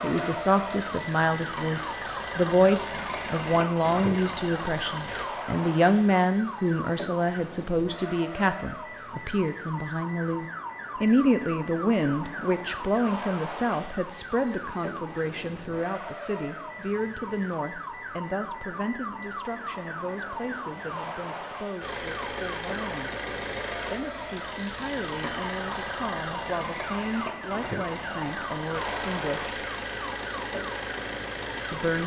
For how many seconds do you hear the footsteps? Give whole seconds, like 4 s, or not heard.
not heard.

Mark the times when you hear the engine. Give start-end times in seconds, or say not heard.
0.0-5.2, 21.8-32.0.